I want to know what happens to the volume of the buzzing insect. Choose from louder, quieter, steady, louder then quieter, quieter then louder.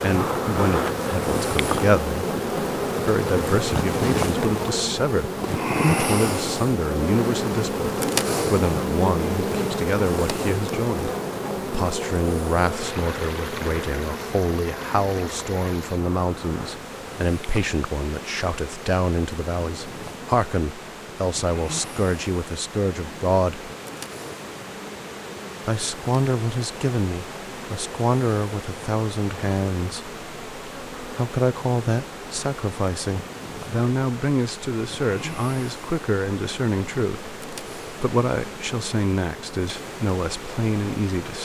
quieter.